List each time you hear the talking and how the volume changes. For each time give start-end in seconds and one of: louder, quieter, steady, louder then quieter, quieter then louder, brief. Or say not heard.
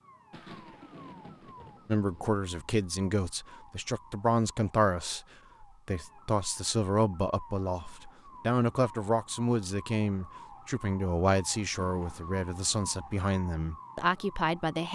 1.9-14.9 steady.